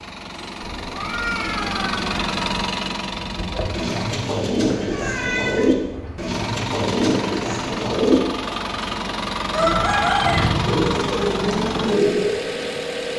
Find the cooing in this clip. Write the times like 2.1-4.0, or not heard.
3.0-12.7.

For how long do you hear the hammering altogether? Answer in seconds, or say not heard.
not heard.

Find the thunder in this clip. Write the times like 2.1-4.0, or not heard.
9.6-11.1.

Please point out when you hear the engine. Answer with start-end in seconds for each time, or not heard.
0.0-4.3, 6.2-13.1.